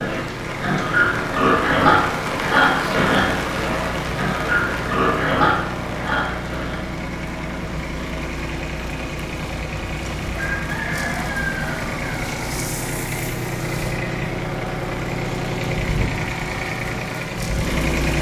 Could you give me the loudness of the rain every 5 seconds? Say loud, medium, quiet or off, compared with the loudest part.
loud, medium, medium, medium.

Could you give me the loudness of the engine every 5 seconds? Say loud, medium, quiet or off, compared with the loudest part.
medium, medium, loud, loud.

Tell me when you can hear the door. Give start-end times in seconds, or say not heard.
not heard.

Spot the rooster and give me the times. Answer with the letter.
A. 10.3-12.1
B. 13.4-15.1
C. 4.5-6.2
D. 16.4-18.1
A.